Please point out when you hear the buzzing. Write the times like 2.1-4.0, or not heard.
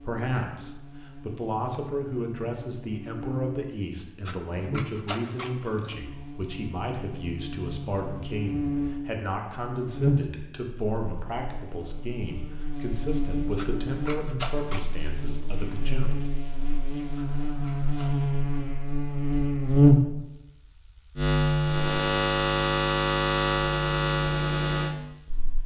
0.0-25.6.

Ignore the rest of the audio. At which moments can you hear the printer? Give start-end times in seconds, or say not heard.
not heard.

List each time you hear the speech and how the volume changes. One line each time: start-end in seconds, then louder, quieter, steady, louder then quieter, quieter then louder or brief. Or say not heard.
0.0-16.2 steady.